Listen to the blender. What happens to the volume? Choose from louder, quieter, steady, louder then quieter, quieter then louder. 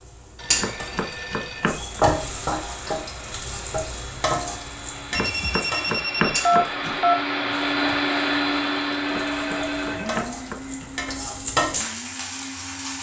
louder then quieter.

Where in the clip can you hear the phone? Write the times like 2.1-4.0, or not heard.
0.3-1.7, 5.1-7.2, 9.2-10.2.